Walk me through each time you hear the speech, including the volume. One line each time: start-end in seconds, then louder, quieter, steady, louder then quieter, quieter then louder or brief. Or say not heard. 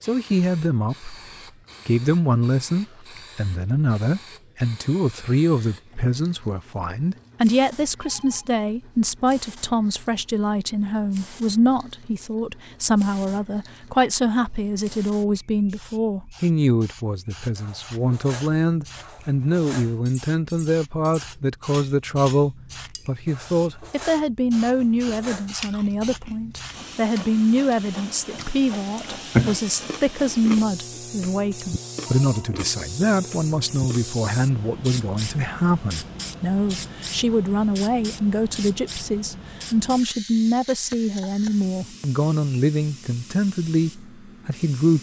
0.0-1.1 brief
1.9-44.9 steady.